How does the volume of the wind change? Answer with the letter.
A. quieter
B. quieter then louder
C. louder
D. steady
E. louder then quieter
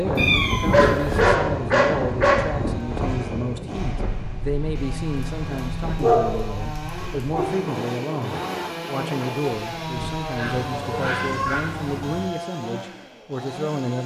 A.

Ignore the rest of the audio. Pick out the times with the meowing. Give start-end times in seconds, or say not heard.
0.1-1.2, 10.5-12.3.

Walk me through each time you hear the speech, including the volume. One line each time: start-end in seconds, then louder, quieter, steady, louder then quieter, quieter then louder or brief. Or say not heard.
0.0-14.0 steady.